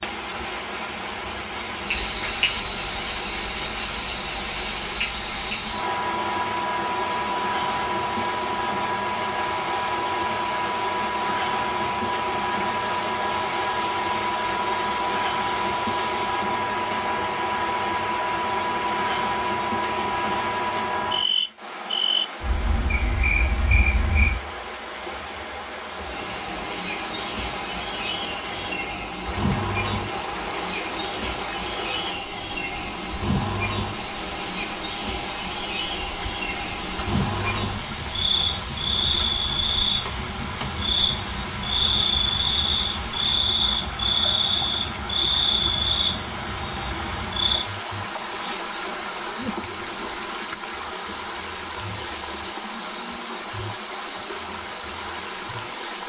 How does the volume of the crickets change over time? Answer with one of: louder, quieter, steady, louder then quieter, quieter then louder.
steady.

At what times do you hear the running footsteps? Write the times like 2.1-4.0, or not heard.
not heard.